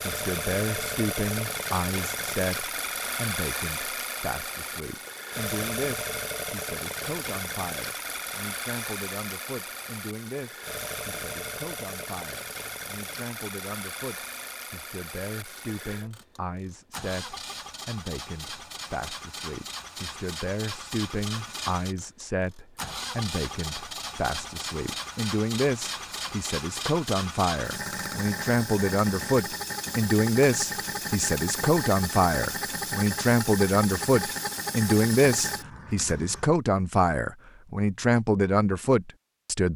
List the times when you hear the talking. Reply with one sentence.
The talking can be heard from 0.1 to 39.7 s.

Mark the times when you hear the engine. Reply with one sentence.
The engine can be heard from 0.0 to 36.5 s.